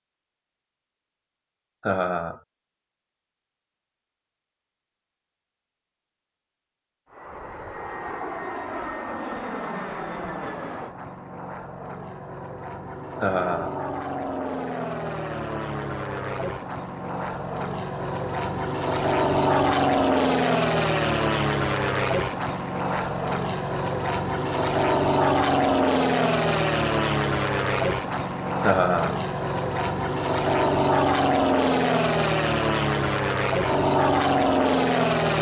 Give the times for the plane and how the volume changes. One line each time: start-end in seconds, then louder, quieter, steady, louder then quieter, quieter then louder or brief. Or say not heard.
7.1-35.3 louder.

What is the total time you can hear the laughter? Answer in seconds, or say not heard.
2 s.